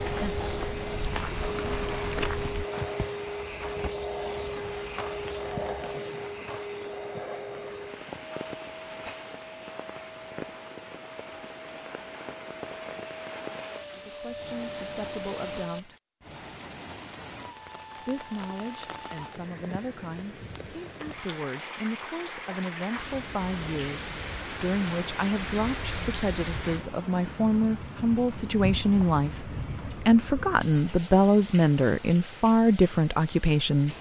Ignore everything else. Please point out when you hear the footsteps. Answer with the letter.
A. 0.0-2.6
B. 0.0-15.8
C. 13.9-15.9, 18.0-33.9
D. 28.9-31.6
A.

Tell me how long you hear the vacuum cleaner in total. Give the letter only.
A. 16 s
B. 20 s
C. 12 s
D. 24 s
A.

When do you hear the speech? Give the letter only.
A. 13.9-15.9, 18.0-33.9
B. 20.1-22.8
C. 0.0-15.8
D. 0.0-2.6
A.